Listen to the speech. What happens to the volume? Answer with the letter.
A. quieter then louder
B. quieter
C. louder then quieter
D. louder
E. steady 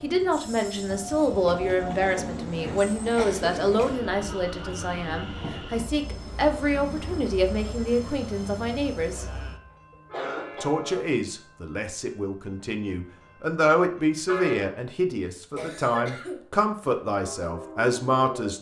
E.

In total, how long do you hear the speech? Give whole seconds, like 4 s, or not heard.
17 s.